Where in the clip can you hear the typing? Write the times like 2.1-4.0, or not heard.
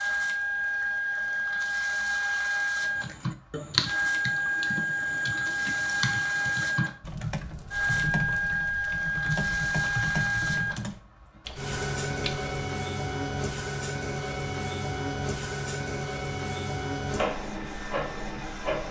3.0-12.5.